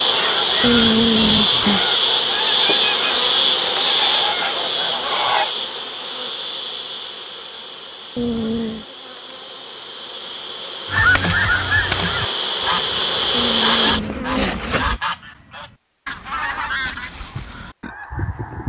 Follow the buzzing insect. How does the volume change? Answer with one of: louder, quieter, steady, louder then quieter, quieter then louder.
quieter then louder.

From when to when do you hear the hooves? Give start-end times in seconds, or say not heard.
not heard.